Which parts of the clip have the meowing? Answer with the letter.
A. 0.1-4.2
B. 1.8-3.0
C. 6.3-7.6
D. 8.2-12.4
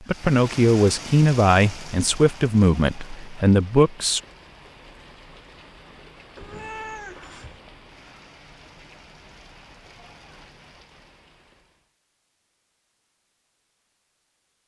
C.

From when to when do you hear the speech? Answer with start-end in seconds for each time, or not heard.
0.1-4.2.